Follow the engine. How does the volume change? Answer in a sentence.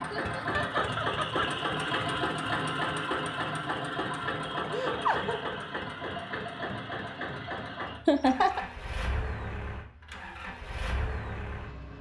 The volume of the engine goes down.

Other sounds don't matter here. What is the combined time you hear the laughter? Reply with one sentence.
You can hear the laughter for 3 seconds altogether.